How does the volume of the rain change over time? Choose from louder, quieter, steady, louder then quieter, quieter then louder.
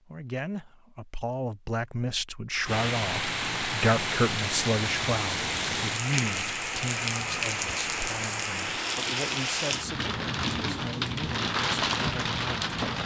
steady.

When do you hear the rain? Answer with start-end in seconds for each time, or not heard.
2.6-13.0.